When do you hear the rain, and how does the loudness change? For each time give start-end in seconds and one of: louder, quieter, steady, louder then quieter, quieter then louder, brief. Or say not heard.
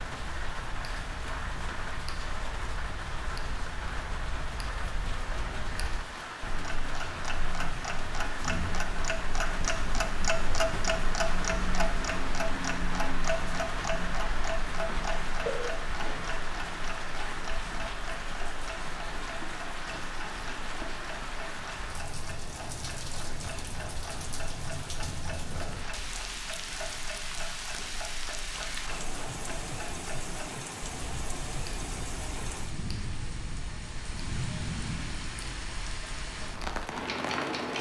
0.0-37.7 steady.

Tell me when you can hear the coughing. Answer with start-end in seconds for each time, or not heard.
15.3-16.3.